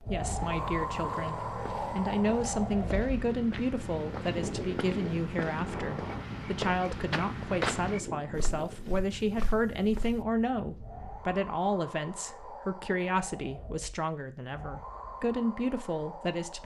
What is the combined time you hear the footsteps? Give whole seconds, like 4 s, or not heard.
10 s.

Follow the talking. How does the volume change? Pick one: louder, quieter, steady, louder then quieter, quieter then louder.
steady.